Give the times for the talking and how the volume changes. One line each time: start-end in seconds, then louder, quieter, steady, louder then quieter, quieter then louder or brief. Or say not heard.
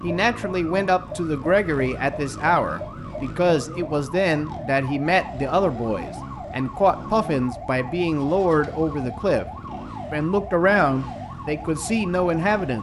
0.0-9.4 steady
10.1-12.7 brief.